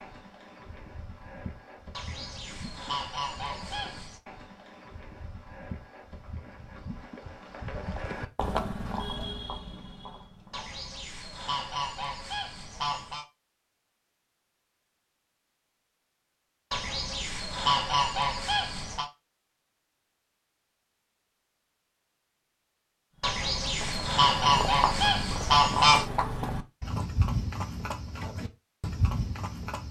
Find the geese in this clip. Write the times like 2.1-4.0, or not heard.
1.9-4.2, 10.5-13.2, 16.7-19.1, 23.2-26.1.